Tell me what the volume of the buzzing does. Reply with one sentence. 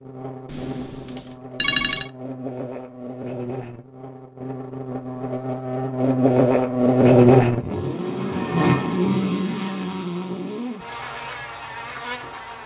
The volume of the buzzing goes up, then down.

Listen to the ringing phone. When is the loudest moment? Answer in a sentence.
The loudest moment of the ringing phone is at 2 seconds.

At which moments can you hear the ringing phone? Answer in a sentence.
You can hear the ringing phone from 0.5 to 2.1 s.